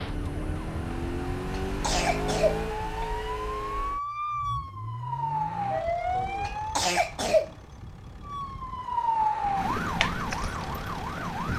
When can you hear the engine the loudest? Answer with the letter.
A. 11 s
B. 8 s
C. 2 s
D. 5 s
C.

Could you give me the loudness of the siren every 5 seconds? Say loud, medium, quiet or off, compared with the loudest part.
medium, loud, loud.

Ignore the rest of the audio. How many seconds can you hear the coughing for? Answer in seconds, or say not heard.
3 s.